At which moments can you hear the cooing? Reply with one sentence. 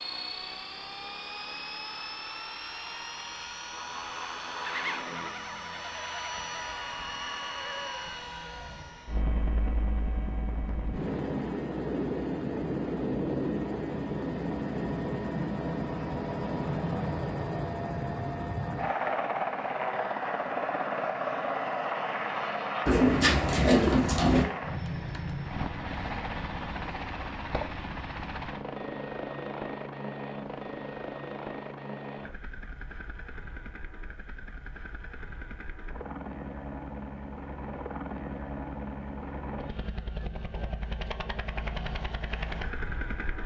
The cooing can be heard from 22.9 to 24.4 s.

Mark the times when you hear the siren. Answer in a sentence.
The siren can't be heard in this clip.